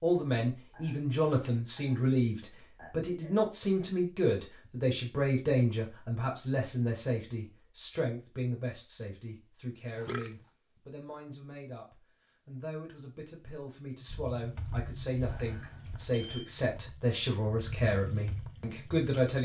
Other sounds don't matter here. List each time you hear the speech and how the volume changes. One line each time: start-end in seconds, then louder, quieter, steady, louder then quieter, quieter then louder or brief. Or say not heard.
0.0-19.4 quieter then louder.